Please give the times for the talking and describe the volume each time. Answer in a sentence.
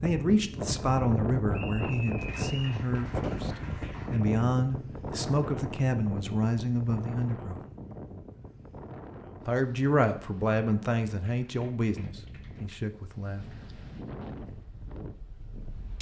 The talking can be heard from 0.0 to 7.6 s, at a steady volume; and from 9.4 to 13.6 s, getting quieter.